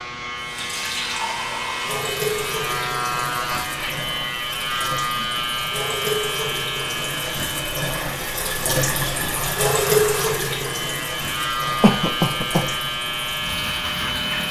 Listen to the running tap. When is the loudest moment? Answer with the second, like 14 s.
10 s.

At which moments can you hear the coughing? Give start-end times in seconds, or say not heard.
11.8-12.7.